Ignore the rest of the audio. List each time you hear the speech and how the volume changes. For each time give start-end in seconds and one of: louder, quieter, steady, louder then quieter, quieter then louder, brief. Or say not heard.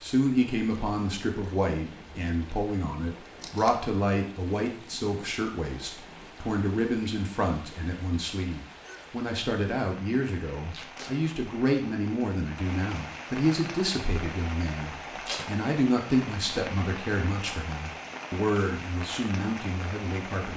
0.0-20.5 steady.